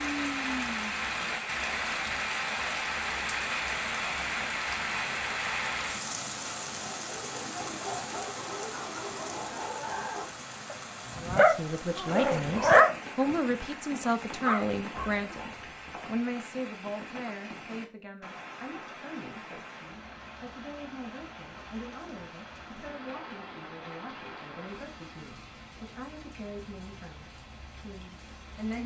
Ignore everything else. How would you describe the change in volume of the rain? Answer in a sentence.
The loudness of the rain goes down.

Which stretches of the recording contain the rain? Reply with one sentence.
The rain can be heard from 0.0 to 28.8 s.